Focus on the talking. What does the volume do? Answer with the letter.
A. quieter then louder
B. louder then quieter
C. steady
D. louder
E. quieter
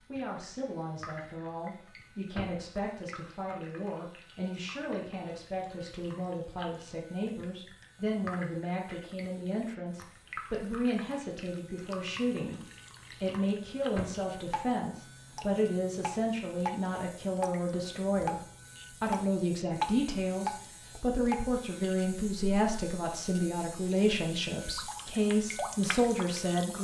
D.